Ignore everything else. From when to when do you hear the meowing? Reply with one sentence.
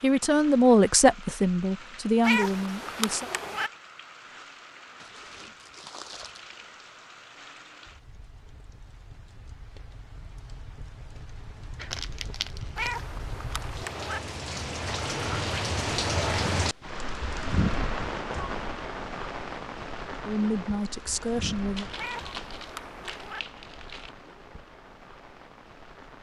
The meowing can be heard from 2.2 to 3.7 s, from 12.8 to 14.2 s and from 21.9 to 23.4 s.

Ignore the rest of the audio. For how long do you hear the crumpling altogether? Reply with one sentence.
You can hear the crumpling for 5 seconds altogether.